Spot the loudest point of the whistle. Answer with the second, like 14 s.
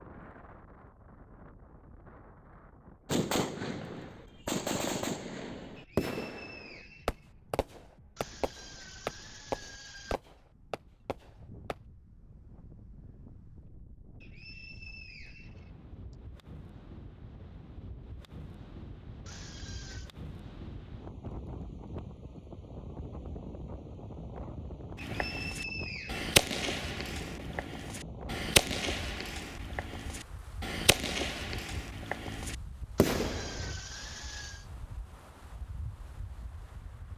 26 s.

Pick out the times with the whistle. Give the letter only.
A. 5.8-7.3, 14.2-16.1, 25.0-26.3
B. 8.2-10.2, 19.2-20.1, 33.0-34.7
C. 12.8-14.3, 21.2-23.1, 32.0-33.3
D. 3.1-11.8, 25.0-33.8
A.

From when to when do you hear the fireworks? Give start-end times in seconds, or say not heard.
3.1-11.8, 25.0-33.8.